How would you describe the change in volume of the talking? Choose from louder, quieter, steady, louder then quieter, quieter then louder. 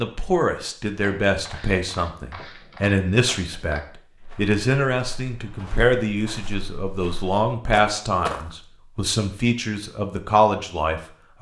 steady.